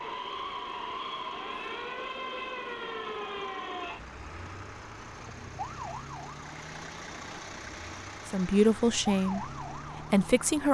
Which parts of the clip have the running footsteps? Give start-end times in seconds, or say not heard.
not heard.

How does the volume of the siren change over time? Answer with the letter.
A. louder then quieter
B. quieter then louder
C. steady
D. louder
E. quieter
B.